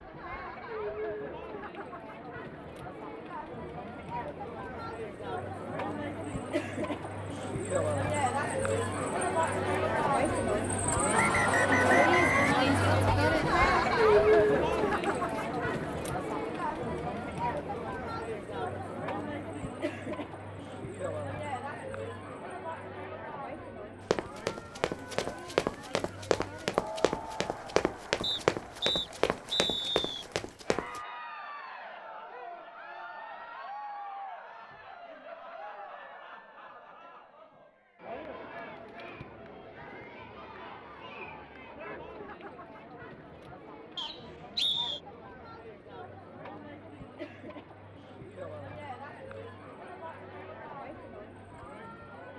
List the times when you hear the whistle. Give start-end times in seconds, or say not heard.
11.1-13.2, 28.2-30.2, 44.0-45.0.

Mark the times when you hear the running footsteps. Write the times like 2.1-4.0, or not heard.
24.1-31.0.